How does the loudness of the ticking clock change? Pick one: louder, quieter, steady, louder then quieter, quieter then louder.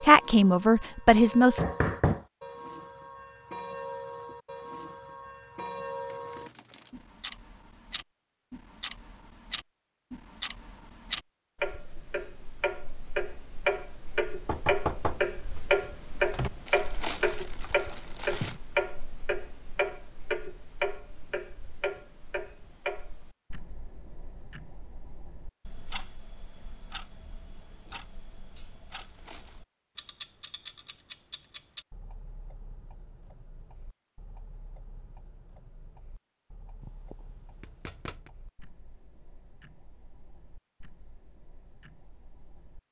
louder then quieter.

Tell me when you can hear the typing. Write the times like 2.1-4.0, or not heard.
not heard.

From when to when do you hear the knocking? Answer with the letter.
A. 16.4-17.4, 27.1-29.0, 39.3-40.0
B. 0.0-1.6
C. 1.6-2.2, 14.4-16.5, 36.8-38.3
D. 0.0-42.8
C.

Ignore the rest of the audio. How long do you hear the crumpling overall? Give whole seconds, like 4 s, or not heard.
4 s.